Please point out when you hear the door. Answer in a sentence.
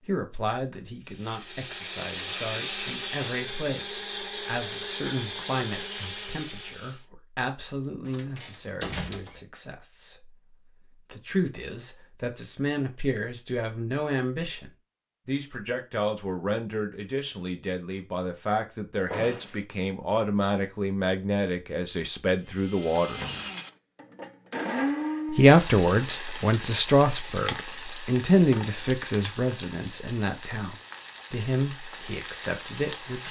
You can hear the door from 8.1 to 9.4 s, from 19.1 to 19.6 s and from 23.0 to 23.5 s.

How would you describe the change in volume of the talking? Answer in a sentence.
The volume of the talking goes up.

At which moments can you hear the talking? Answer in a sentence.
You can hear the talking from 0.1 to 23.2 s and from 25.3 to 33.2 s.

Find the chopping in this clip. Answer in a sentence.
You can't hear the chopping here.